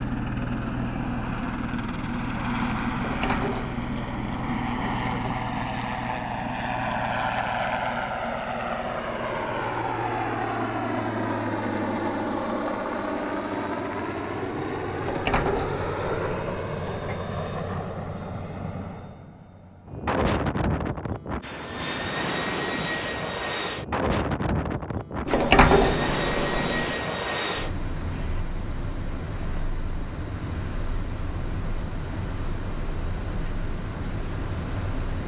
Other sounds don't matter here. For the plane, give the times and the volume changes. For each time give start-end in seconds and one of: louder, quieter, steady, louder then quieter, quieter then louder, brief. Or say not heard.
0.0-35.2 quieter.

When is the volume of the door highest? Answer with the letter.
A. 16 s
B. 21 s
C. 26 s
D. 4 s
C.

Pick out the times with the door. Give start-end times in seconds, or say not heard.
3.0-5.5, 15.0-17.2, 25.2-26.9.